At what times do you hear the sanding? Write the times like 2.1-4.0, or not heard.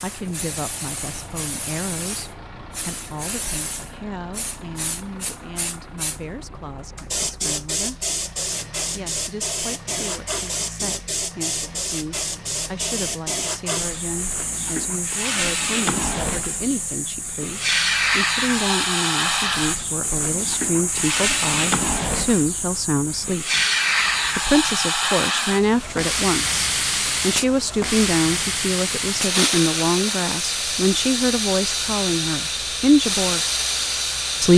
not heard.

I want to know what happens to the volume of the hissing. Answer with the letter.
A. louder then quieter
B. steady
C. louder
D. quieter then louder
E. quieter
C.